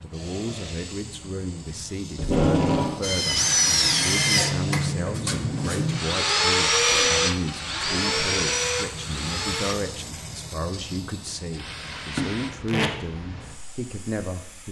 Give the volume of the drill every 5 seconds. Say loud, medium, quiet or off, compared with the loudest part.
loud, loud, off.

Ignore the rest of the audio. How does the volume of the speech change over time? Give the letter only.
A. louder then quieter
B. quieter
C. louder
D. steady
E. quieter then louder
D.